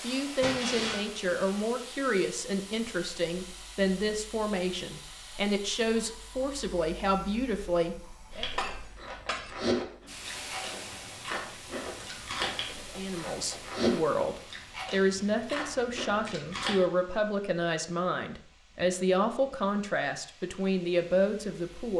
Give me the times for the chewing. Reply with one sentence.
You can hear the chewing from 8.3 to 16.8 s.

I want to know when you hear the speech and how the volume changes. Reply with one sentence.
The speech can be heard from 0.0 to 8.4 s, at a steady volume; and from 12.9 to 21.9 s, at a steady volume.